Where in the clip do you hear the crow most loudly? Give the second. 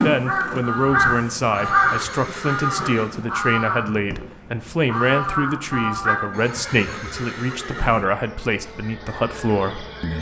2 s.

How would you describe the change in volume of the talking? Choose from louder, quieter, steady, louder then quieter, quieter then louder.
steady.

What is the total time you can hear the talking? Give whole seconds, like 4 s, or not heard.
10 s.